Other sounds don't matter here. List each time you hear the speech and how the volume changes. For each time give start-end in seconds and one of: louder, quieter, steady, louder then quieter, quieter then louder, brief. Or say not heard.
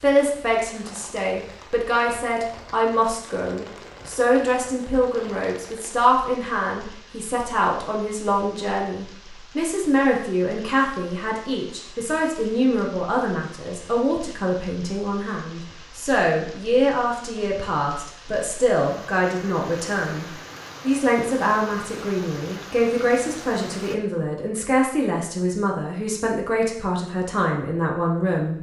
0.0-28.5 steady.